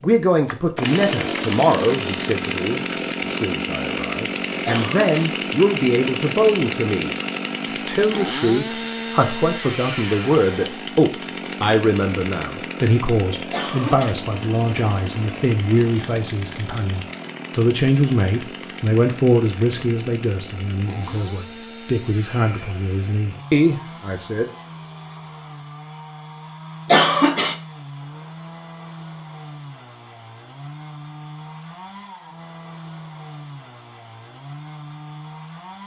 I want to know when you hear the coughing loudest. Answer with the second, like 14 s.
27 s.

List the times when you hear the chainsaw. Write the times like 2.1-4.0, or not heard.
0.0-35.8.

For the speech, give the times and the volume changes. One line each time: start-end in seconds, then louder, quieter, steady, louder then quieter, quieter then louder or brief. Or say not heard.
0.0-7.2 quieter then louder
7.8-24.4 steady.